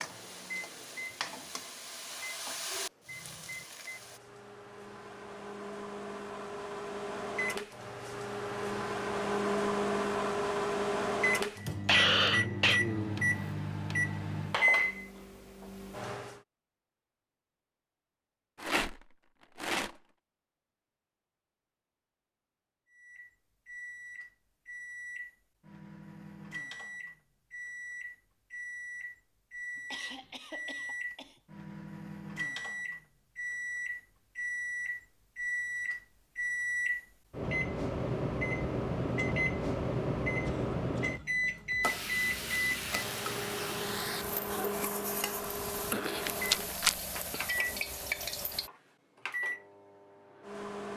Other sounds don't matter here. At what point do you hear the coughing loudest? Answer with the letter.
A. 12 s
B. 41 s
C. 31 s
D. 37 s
A.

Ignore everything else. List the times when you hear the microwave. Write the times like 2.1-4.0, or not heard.
0.0-16.4, 22.9-50.9.